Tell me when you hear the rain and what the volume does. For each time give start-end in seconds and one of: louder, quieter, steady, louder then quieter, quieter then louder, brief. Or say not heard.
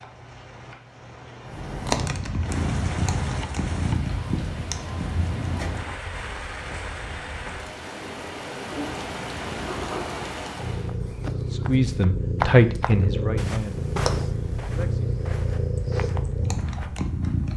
0.0-11.0 louder.